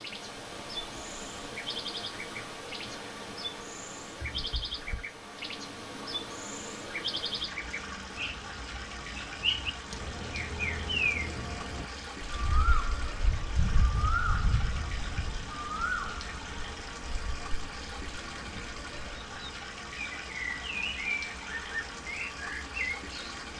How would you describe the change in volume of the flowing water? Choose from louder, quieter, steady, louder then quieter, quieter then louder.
steady.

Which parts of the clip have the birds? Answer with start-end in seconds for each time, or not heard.
0.0-23.4.